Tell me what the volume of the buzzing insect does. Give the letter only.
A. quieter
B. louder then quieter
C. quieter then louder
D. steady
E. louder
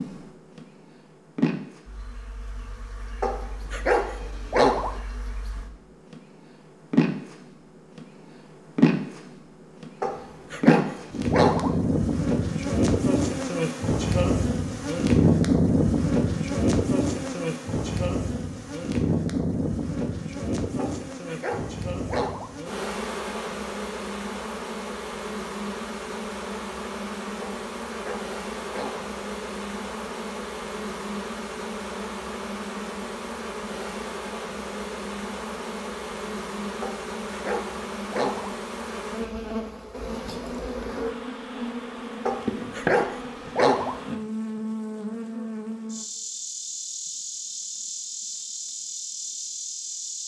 B.